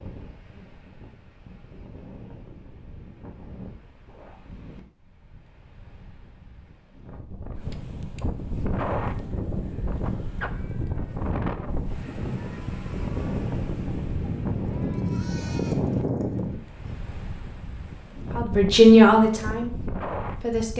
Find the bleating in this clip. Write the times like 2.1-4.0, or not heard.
8.6-16.9.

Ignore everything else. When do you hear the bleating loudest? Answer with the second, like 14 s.
16 s.